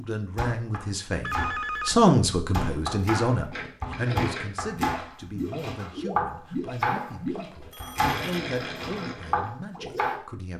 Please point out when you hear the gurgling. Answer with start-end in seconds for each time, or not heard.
3.5-10.2.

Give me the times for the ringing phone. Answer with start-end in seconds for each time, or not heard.
1.2-2.1, 7.0-8.5.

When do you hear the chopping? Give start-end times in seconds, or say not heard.
0.3-10.2.